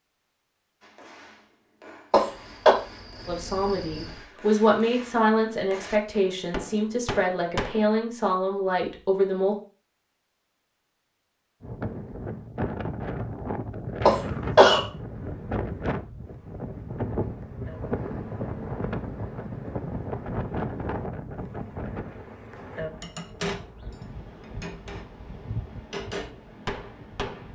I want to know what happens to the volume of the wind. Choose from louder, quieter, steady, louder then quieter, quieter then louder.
quieter.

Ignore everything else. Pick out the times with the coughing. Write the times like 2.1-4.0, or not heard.
2.1-2.8, 14.1-14.8.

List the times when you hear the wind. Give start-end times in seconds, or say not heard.
11.6-27.5.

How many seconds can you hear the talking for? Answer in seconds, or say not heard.
6 s.